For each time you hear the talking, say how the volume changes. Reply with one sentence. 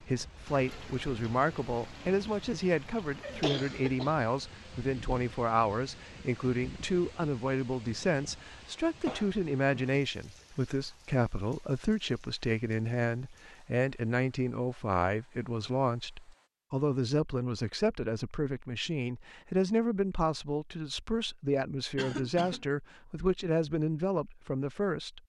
The talking can be heard from 0.0 to 25.2 s, at a steady volume.